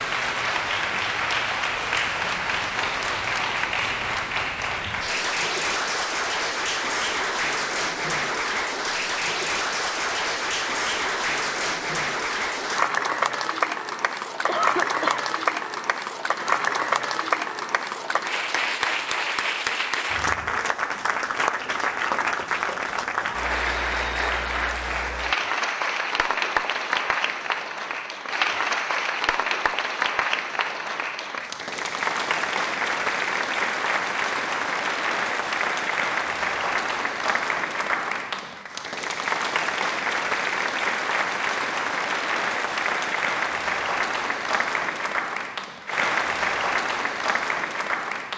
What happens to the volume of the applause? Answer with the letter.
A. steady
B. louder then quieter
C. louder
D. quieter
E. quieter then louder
A.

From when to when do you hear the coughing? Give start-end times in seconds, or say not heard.
14.4-15.2.